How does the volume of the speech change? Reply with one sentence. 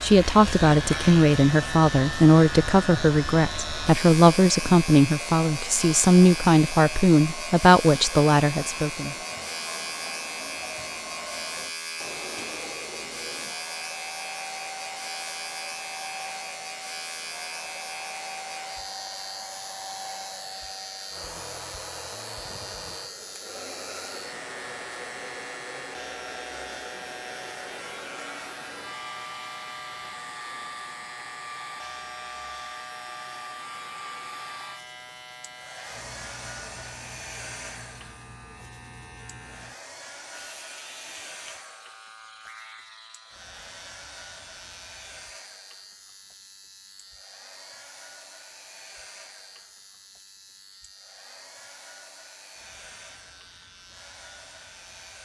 The loudness of the speech stays about the same.